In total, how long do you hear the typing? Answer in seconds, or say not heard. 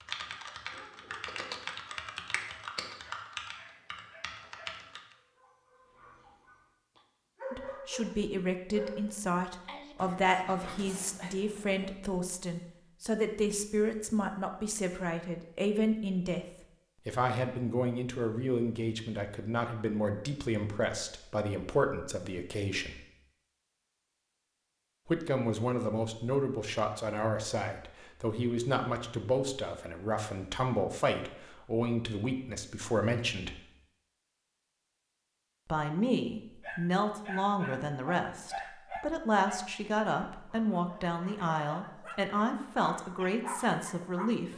5 s.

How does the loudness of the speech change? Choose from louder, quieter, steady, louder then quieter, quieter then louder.
steady.